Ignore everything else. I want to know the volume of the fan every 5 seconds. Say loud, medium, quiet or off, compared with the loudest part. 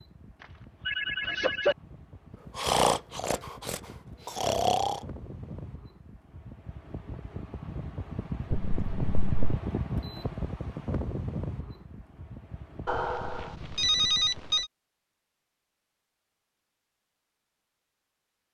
quiet, loud, loud, off.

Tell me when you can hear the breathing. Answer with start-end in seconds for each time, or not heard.
2.5-5.0.